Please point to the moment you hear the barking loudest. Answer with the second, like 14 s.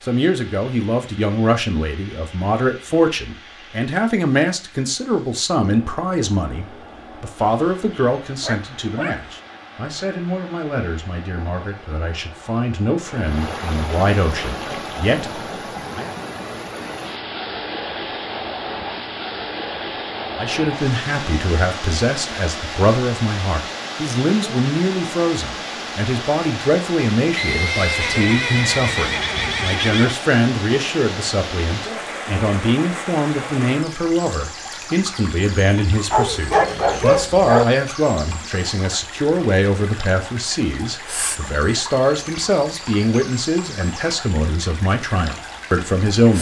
37 s.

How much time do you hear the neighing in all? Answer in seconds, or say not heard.
3 s.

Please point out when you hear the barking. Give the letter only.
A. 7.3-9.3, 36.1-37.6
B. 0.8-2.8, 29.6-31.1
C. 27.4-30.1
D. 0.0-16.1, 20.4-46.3
A.